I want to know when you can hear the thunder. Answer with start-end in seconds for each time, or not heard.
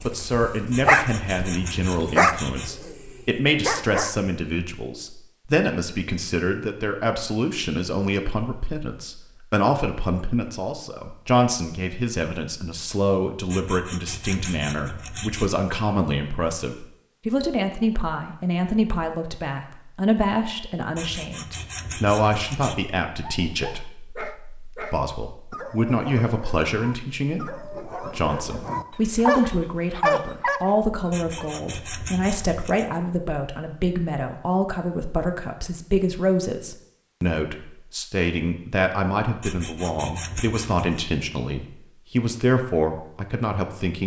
not heard.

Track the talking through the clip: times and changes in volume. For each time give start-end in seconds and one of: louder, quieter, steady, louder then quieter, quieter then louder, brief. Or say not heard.
0.0-44.0 steady.